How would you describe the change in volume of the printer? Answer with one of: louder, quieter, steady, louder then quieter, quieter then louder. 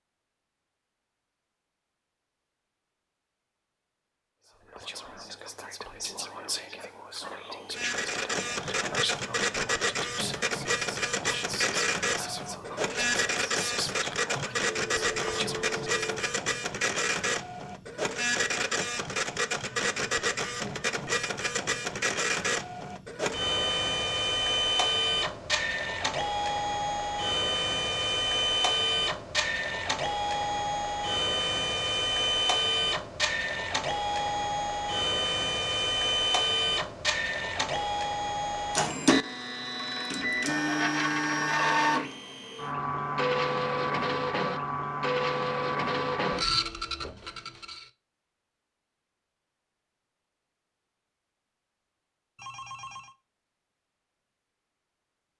steady.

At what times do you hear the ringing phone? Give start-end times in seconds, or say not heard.
14.6-16.3, 52.4-53.1.